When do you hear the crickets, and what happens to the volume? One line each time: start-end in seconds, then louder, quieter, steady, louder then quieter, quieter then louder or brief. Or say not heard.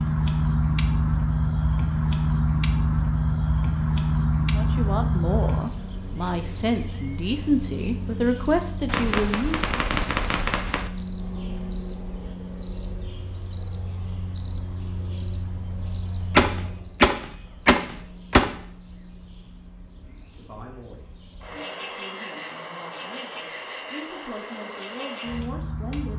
0.0-26.1 quieter.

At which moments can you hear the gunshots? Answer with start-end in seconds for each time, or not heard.
8.9-10.9, 16.4-18.5.